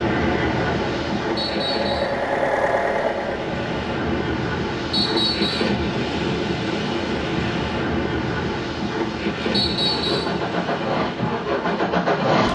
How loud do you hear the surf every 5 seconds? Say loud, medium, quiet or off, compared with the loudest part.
loud, loud, medium.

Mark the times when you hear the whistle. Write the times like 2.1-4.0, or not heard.
1.4-2.2, 4.9-5.8, 9.5-10.4.